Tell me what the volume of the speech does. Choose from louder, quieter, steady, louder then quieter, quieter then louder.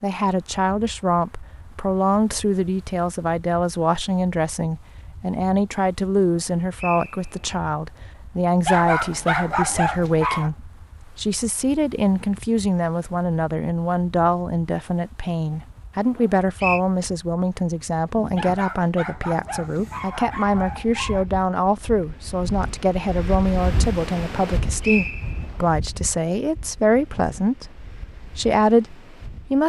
steady.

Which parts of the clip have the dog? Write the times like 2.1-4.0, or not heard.
8.7-10.5, 18.4-21.2.